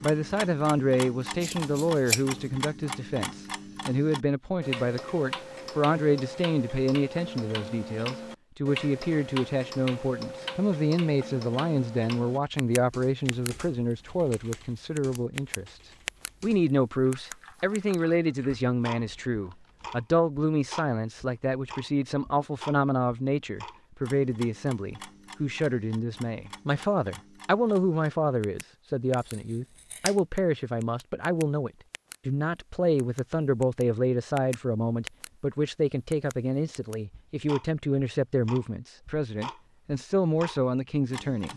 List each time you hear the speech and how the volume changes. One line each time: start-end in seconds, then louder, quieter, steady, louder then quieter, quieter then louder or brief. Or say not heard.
0.0-15.8 steady
16.4-41.5 steady.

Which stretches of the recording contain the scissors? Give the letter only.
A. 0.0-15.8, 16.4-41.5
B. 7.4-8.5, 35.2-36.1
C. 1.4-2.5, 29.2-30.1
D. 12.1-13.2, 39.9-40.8
C.